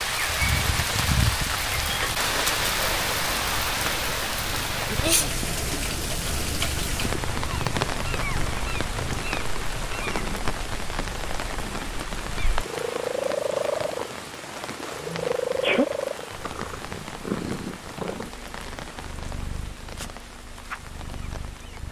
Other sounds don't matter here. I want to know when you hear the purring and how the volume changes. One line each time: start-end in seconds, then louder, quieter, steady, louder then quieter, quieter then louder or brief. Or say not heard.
0.0-21.8 louder then quieter.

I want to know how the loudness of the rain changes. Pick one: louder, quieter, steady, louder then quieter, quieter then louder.
quieter.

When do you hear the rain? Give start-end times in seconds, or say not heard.
0.0-21.8.